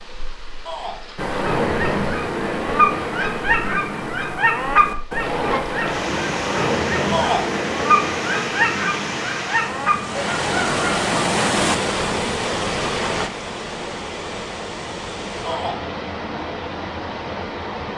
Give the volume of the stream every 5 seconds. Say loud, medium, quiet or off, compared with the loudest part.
quiet, medium, loud, medium.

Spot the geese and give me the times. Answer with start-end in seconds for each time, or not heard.
1.1-11.1.